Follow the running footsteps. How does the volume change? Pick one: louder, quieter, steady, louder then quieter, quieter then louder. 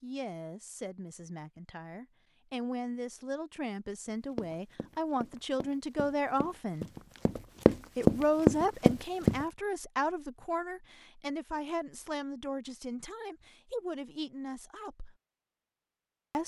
louder.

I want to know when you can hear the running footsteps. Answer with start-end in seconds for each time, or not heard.
4.3-9.4.